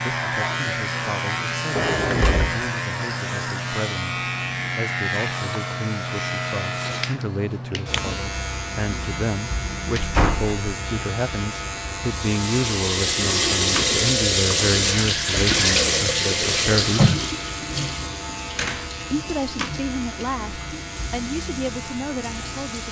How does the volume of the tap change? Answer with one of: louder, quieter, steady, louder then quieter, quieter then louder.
quieter.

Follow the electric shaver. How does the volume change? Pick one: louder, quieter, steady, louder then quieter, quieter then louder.
quieter.